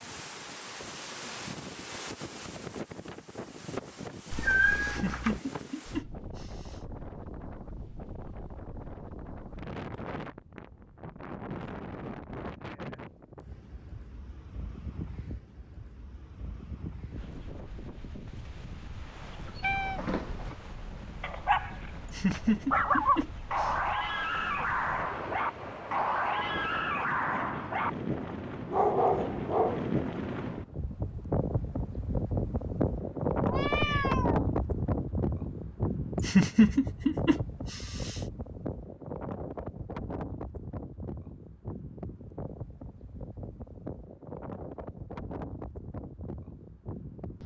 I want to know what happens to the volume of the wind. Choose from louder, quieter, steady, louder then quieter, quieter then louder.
louder then quieter.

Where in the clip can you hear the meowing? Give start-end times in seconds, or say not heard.
4.3-5.4, 19.6-20.6, 33.4-34.5.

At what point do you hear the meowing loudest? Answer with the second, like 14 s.
5 s.